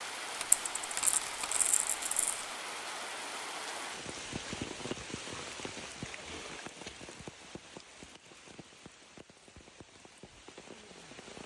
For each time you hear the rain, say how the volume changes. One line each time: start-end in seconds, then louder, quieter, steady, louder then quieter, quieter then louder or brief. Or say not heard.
0.0-11.4 quieter.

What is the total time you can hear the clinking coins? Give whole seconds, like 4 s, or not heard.
2 s.